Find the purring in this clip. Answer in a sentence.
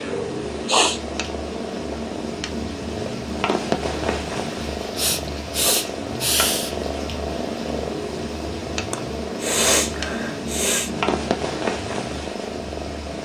The purring can be heard from 0.0 to 13.2 s.